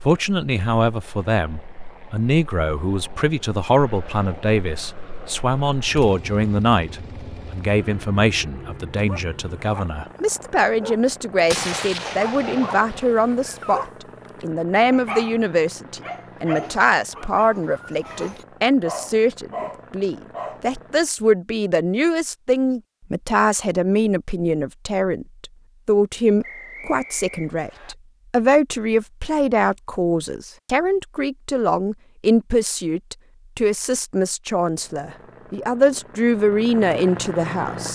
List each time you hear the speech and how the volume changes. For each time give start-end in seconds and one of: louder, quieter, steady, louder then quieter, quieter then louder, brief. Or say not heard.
0.0-13.8 steady
14.4-37.9 steady.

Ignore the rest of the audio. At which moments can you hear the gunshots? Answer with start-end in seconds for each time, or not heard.
11.4-13.9.